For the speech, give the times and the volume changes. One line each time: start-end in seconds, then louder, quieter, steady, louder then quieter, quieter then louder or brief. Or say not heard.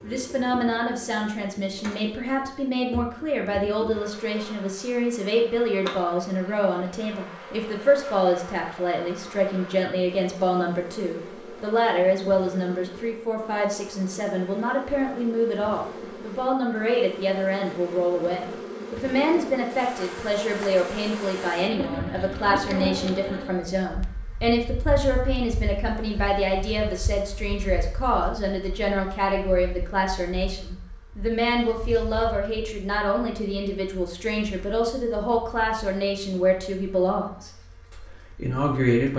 0.0-39.1 steady.